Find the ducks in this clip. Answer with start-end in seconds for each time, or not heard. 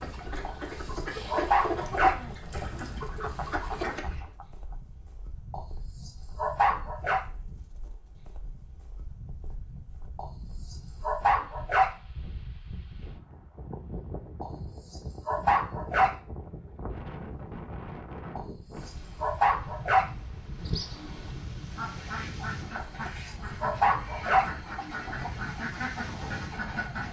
0.0-4.3, 20.5-27.0.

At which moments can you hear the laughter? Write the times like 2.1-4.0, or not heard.
3.0-4.8.